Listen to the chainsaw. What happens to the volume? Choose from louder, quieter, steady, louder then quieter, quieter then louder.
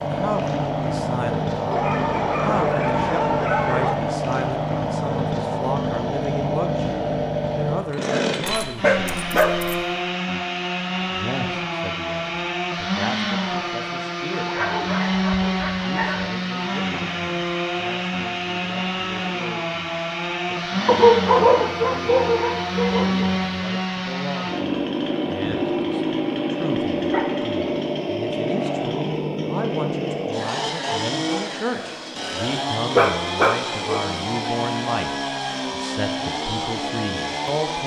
steady.